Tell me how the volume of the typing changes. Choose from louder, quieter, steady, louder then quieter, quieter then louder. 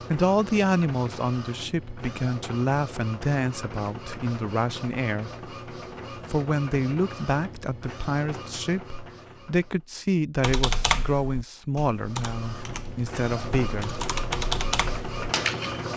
quieter then louder.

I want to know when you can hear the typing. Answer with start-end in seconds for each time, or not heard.
10.4-15.8.